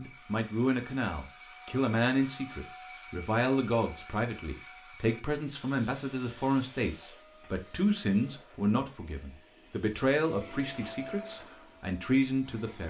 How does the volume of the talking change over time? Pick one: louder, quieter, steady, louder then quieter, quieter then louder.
steady.